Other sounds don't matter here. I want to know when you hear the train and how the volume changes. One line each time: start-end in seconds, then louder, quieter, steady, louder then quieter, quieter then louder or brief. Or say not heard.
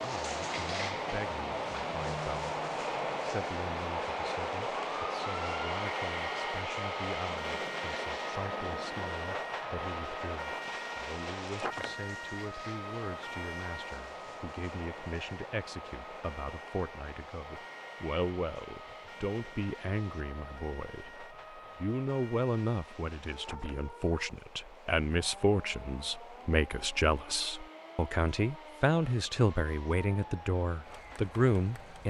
0.0-32.0 quieter.